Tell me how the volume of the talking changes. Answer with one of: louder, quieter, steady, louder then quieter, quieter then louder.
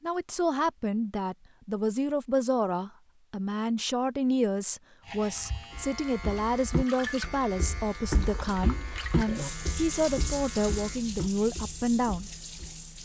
steady.